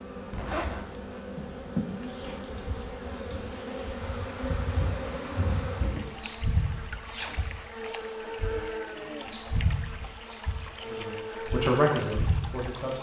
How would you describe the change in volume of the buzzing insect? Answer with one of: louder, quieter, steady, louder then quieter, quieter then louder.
steady.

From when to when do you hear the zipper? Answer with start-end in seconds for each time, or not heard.
0.3-1.2, 7.0-7.5.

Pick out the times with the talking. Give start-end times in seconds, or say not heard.
10.8-12.9.